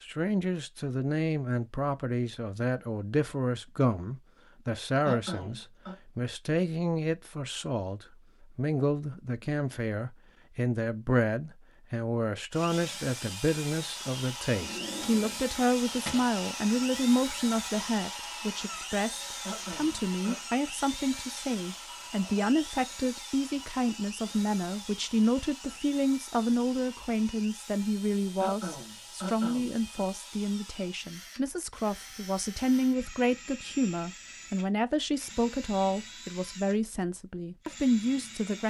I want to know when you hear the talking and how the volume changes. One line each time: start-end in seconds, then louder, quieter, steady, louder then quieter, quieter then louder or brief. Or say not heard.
0.0-38.6 steady.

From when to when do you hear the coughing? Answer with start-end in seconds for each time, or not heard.
5.0-6.0, 19.4-20.4, 28.4-30.1.